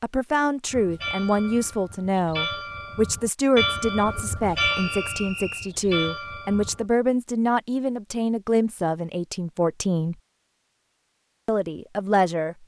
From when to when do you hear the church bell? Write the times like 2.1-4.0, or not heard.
0.7-6.8.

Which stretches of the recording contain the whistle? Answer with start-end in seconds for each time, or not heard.
4.7-5.8.